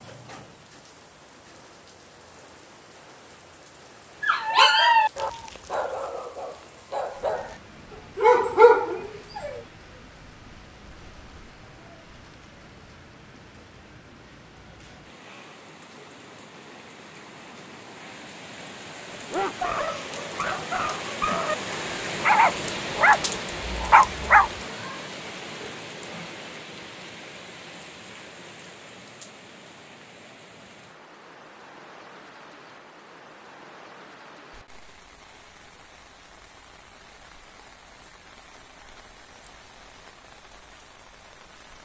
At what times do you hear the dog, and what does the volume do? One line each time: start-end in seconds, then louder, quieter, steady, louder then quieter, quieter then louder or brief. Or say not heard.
4.2-9.6 quieter then louder
19.3-24.5 louder.